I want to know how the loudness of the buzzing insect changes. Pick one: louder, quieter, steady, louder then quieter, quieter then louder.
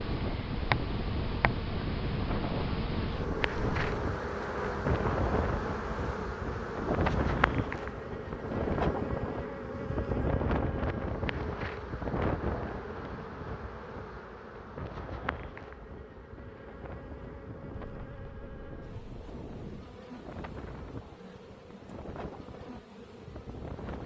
quieter.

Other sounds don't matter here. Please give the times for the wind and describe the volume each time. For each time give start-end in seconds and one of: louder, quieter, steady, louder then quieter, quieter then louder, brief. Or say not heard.
0.0-24.0 quieter.